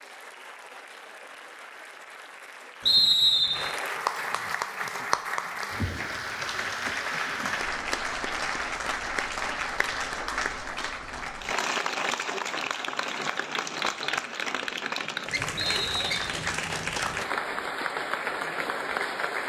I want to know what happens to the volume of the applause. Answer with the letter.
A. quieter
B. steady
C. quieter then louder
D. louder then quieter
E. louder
E.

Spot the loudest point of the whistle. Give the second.
3 s.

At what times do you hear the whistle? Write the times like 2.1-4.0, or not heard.
2.9-3.7, 15.6-16.4.